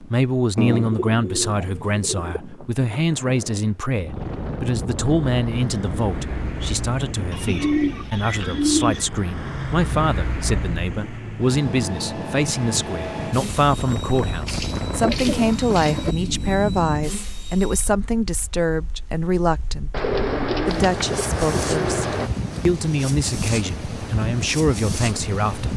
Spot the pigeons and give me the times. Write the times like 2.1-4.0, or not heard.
0.6-2.4, 7.3-9.1, 14.4-16.1, 19.9-22.3.